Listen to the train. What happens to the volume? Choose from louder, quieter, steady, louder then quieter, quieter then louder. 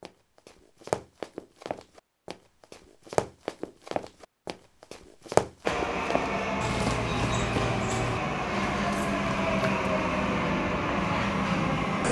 steady.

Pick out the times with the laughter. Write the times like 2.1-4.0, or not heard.
not heard.